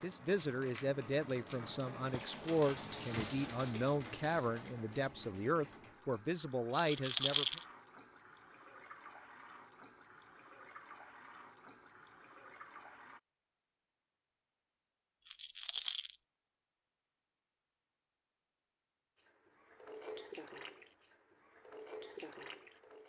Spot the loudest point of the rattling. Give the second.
7 s.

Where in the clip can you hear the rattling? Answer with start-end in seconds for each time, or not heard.
6.7-7.6, 15.2-16.1.